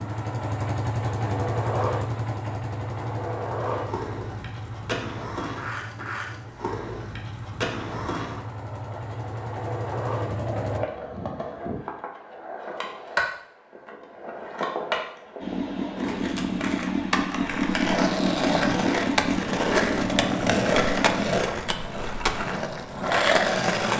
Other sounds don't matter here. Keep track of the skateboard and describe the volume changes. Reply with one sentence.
The loudness of the skateboard goes up.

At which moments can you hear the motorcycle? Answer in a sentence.
The motorcycle can be heard from 0.0 to 10.8 s and from 15.4 to 21.2 s.